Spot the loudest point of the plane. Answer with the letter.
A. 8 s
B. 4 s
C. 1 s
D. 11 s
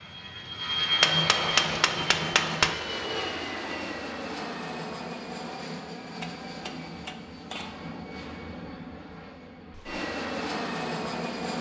C.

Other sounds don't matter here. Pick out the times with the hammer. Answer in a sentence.
You can hear the hammer from 1.0 to 2.8 s and from 6.2 to 7.8 s.